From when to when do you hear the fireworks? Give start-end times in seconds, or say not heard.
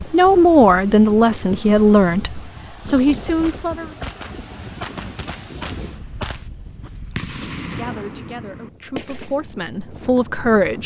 3.4-9.4.